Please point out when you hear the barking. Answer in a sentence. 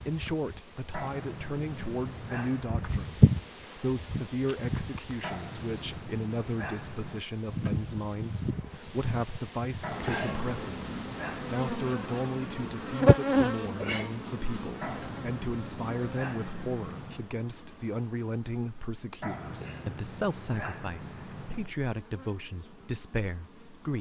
You can hear the barking from 0.9 to 3.0 s, from 5.2 to 7.2 s, from 9.8 to 11.7 s, from 14.8 to 17.3 s and from 19.2 to 21.8 s.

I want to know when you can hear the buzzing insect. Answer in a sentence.
The buzzing insect can be heard from 0.0 to 23.9 s.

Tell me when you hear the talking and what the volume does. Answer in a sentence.
The talking can be heard from 0.0 to 23.9 s, at a steady volume.